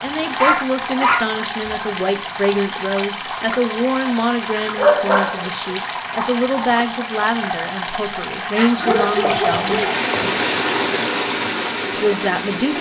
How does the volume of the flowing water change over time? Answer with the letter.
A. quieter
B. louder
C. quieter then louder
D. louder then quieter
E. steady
B.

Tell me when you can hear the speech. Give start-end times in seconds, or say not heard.
0.0-9.8, 11.9-12.7.